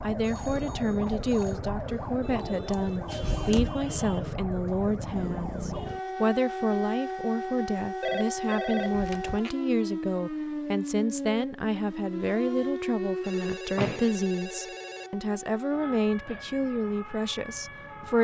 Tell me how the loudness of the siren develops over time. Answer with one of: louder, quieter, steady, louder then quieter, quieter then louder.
quieter.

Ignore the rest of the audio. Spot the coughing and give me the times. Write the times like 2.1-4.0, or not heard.
not heard.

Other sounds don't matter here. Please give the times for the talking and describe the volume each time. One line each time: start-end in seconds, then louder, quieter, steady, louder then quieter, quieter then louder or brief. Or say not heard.
0.0-18.1 steady.